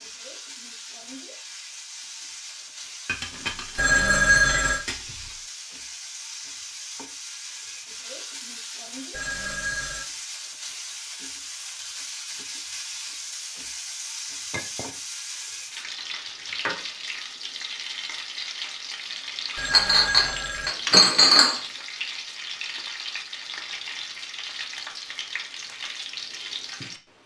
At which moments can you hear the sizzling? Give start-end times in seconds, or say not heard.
0.0-27.2.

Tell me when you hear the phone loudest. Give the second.
4 s.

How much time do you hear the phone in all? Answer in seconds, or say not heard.
3 s.